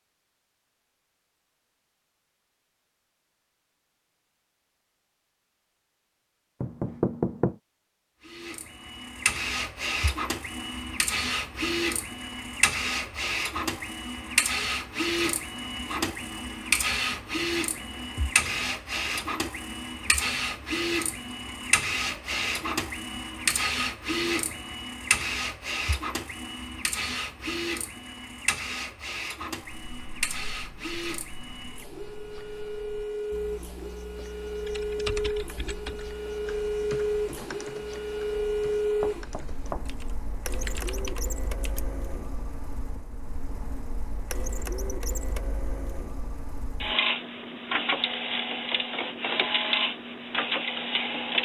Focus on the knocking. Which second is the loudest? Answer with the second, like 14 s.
7 s.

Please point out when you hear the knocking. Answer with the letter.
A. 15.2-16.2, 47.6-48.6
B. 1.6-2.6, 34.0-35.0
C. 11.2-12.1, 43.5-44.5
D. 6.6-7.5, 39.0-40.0
D.